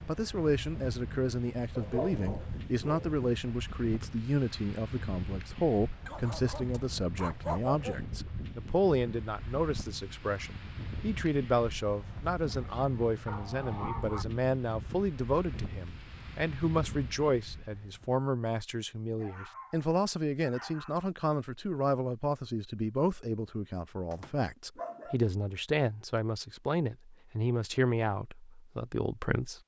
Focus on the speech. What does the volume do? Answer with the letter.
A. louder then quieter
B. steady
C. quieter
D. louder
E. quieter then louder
B.